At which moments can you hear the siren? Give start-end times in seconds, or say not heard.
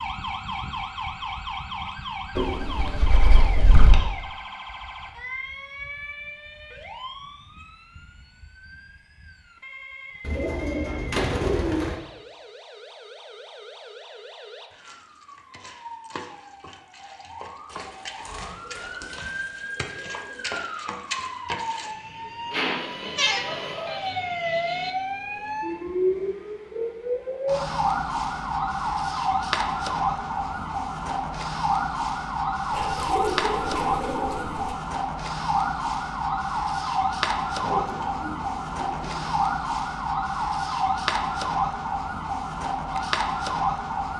0.0-44.1.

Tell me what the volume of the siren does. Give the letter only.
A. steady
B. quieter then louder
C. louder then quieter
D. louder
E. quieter
B.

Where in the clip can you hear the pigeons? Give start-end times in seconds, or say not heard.
2.4-4.0, 10.2-12.0, 17.7-20.4, 22.5-24.1, 32.7-34.8, 37.6-39.3.